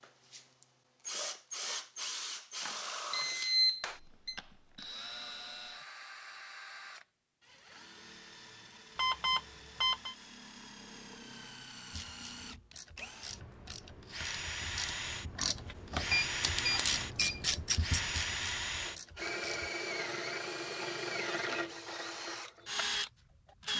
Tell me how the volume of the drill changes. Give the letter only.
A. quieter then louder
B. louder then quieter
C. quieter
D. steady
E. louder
A.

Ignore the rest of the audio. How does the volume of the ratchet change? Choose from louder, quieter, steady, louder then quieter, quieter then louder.
louder then quieter.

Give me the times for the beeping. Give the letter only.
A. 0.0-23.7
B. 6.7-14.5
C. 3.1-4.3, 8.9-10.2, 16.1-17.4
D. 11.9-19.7
C.